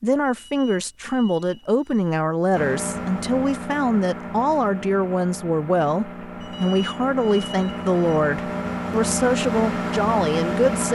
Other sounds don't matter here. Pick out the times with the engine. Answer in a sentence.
You can hear the engine from 2.5 to 10.9 s.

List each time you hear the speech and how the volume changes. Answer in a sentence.
The speech can be heard from 0.0 to 10.9 s, at a steady volume.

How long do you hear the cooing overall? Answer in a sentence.
You can't hear the cooing here.